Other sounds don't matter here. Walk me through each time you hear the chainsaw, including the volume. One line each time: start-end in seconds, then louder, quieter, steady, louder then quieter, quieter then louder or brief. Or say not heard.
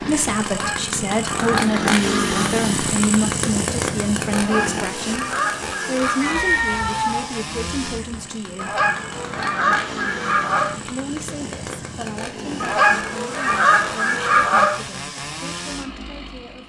0.0-16.6 quieter.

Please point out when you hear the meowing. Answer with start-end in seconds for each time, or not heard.
6.2-8.2.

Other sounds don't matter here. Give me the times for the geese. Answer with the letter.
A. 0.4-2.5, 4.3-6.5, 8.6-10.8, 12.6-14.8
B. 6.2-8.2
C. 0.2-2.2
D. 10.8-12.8
A.